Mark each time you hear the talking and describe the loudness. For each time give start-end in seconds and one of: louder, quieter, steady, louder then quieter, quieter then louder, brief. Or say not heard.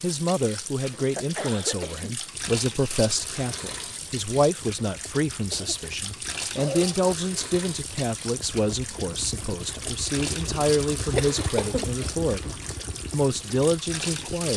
0.0-12.5 steady
13.1-14.5 brief.